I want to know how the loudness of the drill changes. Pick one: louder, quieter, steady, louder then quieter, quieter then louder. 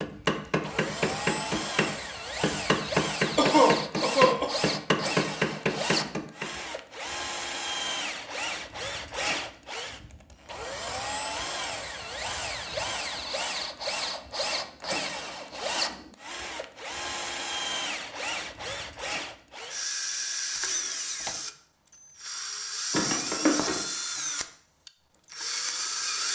steady.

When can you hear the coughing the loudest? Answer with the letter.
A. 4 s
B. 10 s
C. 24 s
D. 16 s
A.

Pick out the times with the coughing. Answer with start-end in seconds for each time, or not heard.
3.4-4.5, 22.9-23.8.